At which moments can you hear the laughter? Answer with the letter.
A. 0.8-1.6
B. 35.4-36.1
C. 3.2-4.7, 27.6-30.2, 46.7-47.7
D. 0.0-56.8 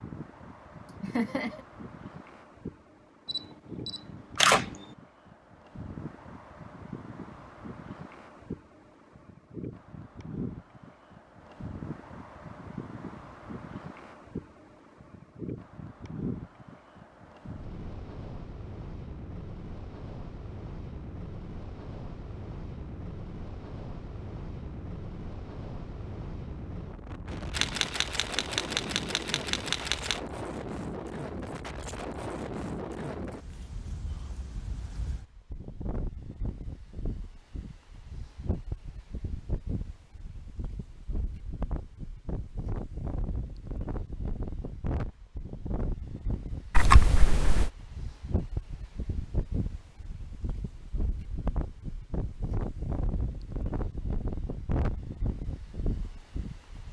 A.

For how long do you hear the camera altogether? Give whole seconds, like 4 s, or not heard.
5 s.